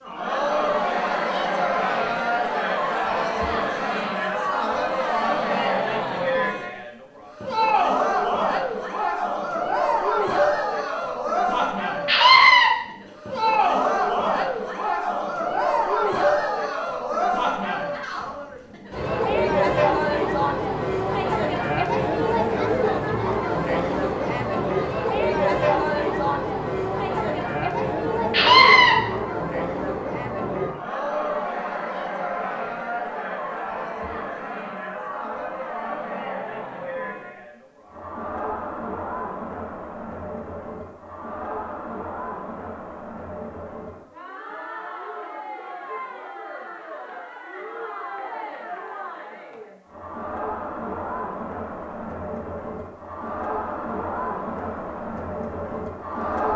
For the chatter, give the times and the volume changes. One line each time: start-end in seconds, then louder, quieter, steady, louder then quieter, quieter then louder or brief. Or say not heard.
0.0-56.5 quieter.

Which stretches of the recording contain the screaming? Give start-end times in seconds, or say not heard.
12.1-12.7, 28.3-28.9.